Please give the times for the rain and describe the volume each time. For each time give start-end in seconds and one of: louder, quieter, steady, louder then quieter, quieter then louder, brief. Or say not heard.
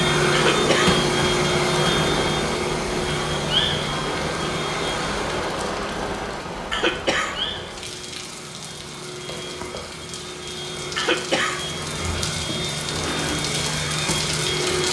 0.0-14.8 quieter then louder.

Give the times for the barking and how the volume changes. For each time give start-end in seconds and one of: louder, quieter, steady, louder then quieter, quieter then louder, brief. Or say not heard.
not heard.